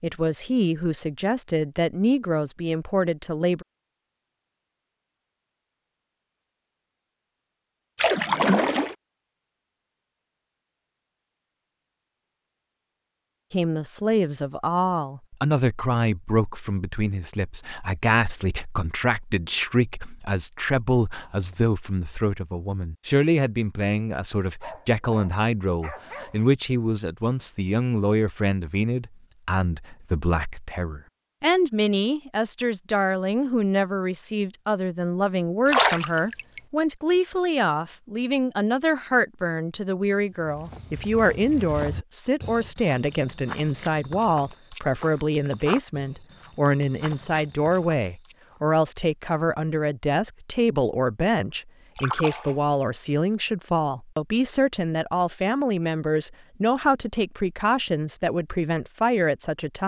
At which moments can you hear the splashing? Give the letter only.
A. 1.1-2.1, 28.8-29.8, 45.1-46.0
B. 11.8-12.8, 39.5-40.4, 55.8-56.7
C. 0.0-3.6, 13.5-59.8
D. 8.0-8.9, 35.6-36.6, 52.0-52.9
D.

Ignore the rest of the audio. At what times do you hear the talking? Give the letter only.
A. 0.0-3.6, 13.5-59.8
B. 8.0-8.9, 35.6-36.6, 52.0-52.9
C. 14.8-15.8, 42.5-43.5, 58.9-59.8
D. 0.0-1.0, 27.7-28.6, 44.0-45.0
A.